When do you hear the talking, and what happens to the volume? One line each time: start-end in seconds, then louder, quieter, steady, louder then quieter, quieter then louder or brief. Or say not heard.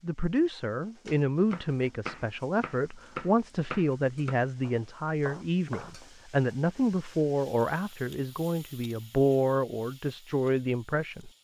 0.0-11.3 steady.